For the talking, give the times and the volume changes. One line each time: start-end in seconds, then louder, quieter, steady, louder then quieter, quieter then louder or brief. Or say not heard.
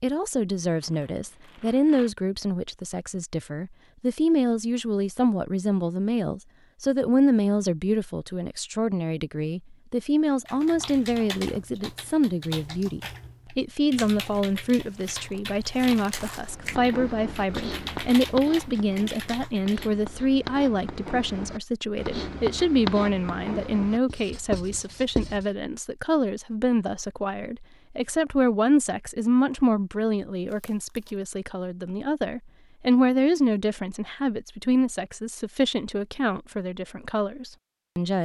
0.0-38.1 steady.